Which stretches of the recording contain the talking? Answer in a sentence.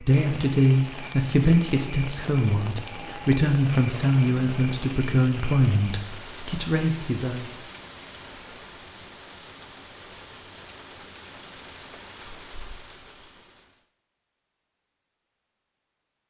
The talking can be heard from 0.0 to 7.5 s.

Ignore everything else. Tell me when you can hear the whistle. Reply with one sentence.
The whistle can't be heard in this clip.